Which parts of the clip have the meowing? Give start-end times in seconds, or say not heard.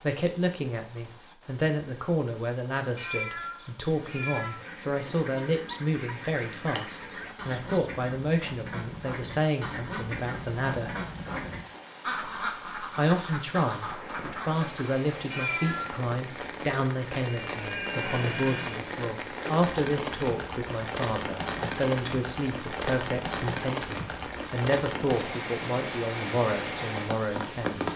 3.0-4.6, 15.3-15.9.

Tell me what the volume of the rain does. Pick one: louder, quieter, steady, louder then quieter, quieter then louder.
louder.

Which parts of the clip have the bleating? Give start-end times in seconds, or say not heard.
17.3-18.9.